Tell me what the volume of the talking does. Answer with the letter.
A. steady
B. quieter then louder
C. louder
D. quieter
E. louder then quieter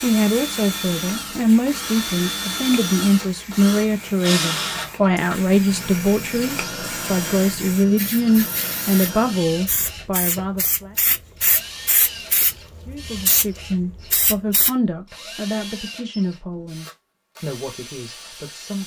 D.